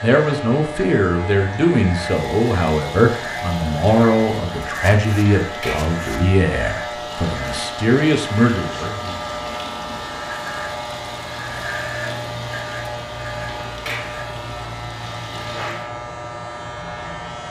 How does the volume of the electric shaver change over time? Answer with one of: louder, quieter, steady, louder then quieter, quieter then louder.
steady.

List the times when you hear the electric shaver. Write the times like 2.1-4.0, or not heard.
0.0-17.4.